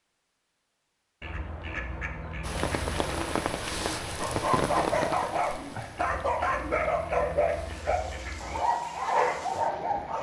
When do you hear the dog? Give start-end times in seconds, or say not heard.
4.2-10.1.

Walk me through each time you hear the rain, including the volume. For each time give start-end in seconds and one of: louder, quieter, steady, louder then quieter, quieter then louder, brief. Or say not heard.
2.4-10.1 quieter.